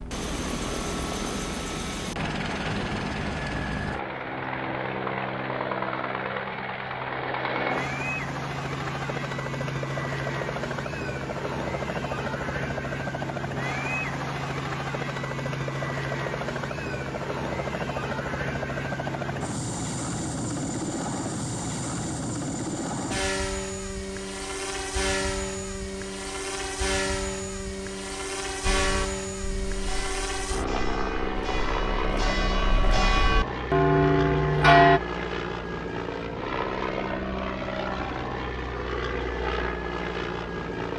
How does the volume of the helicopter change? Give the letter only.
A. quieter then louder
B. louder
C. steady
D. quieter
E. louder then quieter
C.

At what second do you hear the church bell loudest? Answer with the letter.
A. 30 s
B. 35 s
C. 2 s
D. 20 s
B.